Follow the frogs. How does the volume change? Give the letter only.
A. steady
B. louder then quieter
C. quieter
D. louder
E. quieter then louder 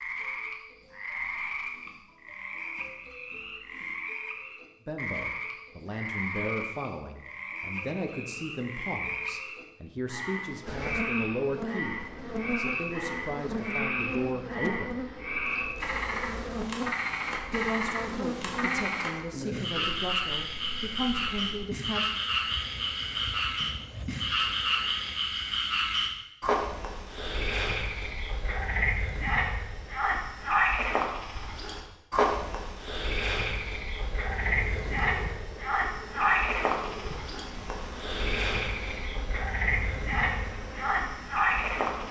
D.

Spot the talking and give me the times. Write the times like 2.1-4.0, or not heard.
4.8-14.9, 17.5-22.1.